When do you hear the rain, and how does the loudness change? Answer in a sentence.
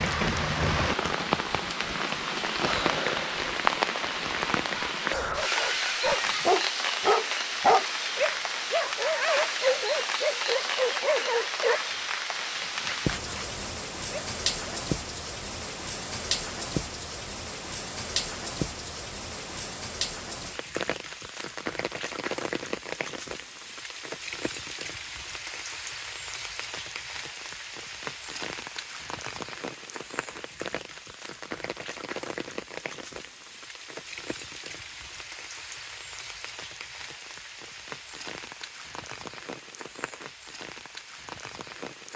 You can hear the rain from 0.0 to 42.1 s, getting quieter.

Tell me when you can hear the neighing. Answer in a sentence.
You can hear the neighing from 5.1 to 6.5 s.